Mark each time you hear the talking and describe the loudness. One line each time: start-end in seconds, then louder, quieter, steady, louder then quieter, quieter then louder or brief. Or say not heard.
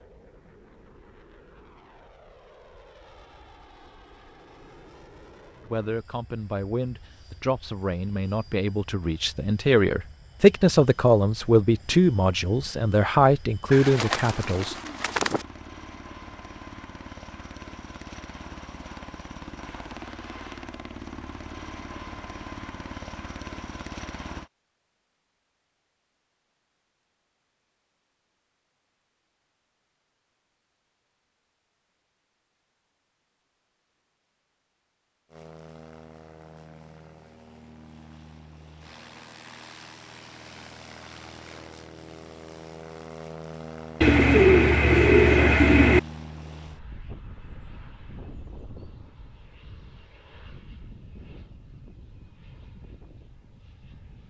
5.7-14.8 louder.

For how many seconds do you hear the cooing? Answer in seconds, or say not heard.
4 s.